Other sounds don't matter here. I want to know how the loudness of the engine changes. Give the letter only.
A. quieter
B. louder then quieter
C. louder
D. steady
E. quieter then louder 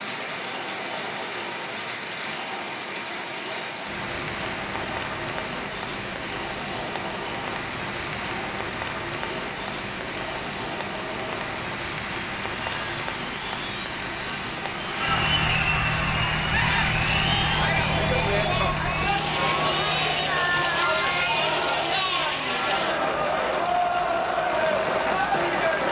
A.